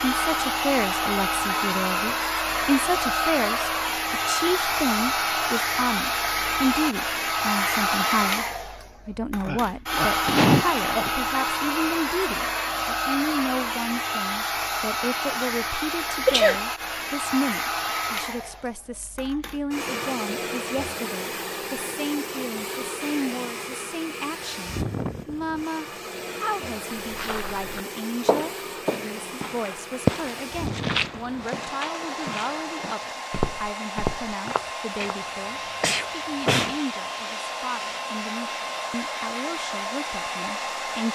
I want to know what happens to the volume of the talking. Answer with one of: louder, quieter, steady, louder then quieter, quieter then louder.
quieter.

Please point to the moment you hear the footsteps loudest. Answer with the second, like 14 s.
30 s.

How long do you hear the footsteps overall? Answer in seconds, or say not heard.
8 s.